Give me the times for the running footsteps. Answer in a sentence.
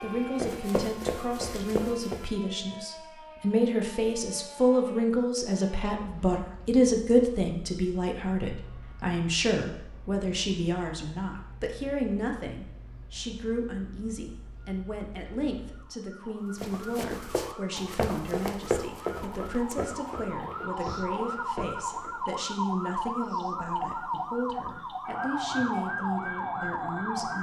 You can hear the running footsteps from 0.0 to 2.2 s and from 16.6 to 22.4 s.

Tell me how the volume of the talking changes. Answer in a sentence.
The volume of the talking goes down.